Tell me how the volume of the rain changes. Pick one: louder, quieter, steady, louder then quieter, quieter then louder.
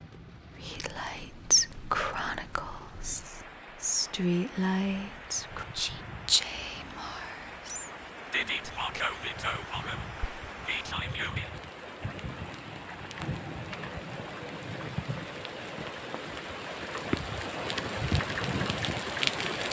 louder.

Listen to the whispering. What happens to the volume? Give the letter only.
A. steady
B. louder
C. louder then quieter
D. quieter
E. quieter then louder
D.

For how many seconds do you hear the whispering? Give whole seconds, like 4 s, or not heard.
11 s.